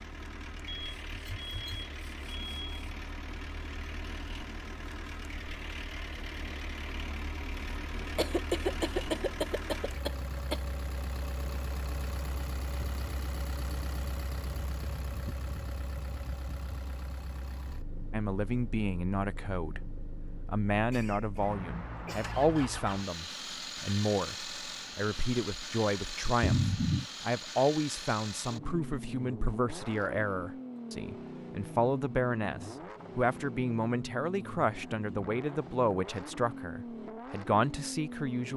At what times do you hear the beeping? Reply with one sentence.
You can hear the beeping from 0.7 to 3.0 s.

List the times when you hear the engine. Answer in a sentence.
The engine can be heard from 0.0 to 38.5 s.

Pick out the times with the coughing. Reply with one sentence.
You can hear the coughing from 8.2 to 10.6 s, from 20.9 to 22.4 s and from 26.4 to 27.1 s.